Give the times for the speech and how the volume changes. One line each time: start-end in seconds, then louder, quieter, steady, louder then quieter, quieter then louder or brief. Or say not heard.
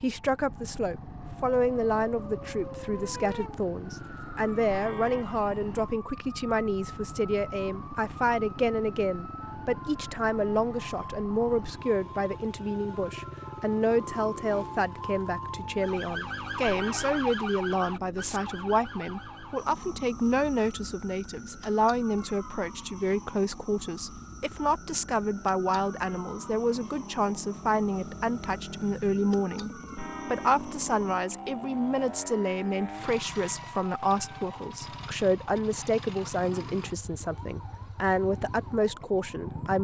0.0-39.7 steady.